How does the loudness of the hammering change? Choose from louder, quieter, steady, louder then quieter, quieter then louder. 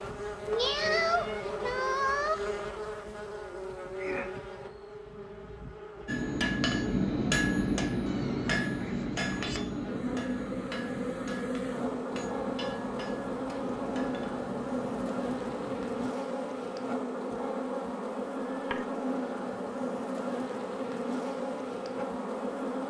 quieter.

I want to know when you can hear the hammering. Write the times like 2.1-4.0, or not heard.
6.0-16.1.